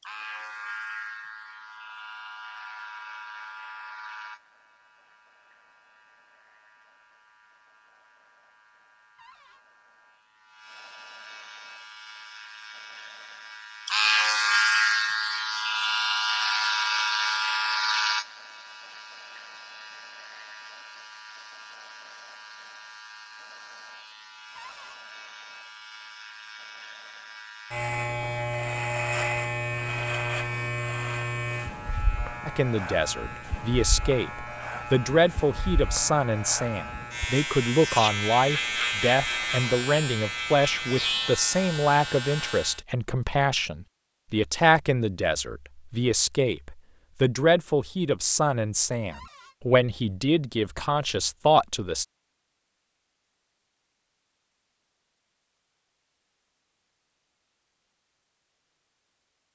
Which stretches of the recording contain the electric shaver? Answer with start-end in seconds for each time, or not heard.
0.0-42.8.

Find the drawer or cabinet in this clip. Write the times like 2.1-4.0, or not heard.
9.2-9.6, 24.6-25.0, 49.1-49.5.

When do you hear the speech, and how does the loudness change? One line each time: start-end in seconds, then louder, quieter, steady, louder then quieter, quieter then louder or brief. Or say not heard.
32.5-52.0 steady.